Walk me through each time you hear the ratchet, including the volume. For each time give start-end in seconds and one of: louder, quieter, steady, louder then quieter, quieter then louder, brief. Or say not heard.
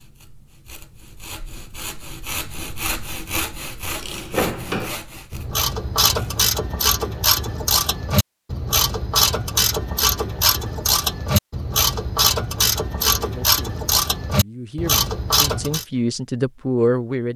3.9-15.8 steady.